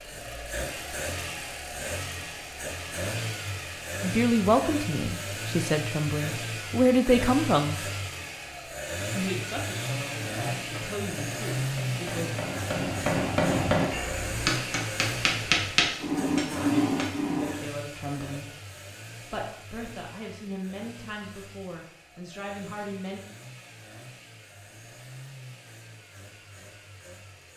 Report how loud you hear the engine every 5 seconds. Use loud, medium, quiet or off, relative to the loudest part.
loud, loud, loud, medium, quiet, quiet.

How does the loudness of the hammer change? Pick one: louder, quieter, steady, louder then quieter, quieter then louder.
louder.